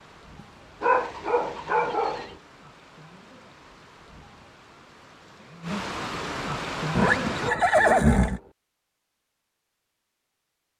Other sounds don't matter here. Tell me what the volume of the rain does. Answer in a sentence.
The volume of the rain goes up.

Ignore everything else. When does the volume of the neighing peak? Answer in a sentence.
The loudest moment of the neighing is at 8 seconds.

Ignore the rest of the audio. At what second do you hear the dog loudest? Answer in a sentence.
The volume of the dog peaks at 1 second.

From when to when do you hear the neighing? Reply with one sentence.
You can hear the neighing from 0.8 to 2.4 s and from 7.0 to 8.4 s.